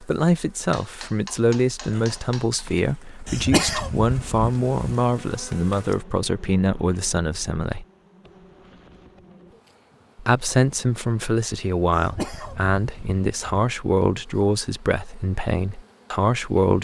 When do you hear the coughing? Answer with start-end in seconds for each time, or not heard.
3.2-4.8, 11.9-13.7.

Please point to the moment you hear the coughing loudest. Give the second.
4 s.